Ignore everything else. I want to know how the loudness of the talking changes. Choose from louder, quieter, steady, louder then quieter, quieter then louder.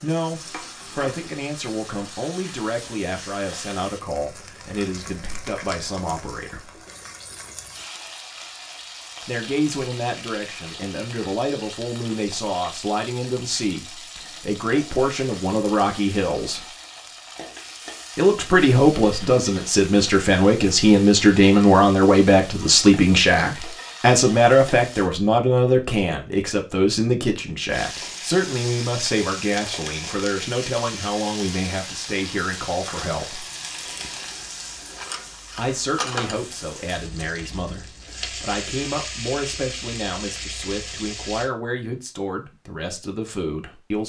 louder then quieter.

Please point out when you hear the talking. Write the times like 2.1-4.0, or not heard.
0.0-6.8, 9.2-16.7, 18.1-33.5, 35.5-44.0.